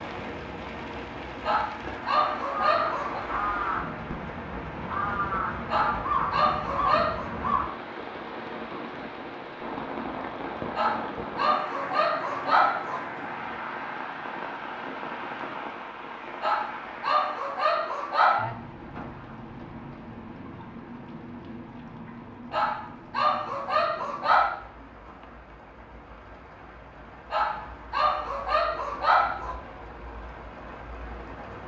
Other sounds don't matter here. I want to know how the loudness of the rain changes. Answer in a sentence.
The loudness of the rain goes down.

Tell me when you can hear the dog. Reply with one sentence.
The dog can be heard from 1.4 to 3.2 s, from 5.7 to 7.3 s, from 10.8 to 13.0 s, from 16.4 to 18.4 s, from 22.5 to 24.6 s and from 27.3 to 29.6 s.